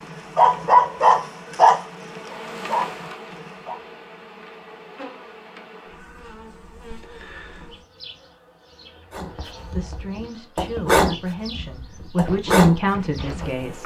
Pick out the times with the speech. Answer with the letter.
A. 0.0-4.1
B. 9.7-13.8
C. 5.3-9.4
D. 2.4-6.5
B.